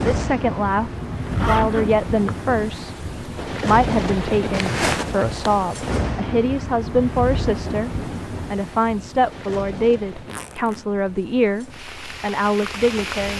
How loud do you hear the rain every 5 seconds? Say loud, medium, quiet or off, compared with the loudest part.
loud, loud, medium.